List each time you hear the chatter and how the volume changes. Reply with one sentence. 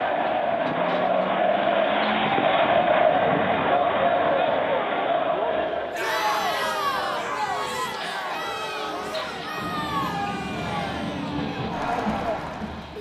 The chatter can be heard from 0.0 to 12.9 s, getting quieter.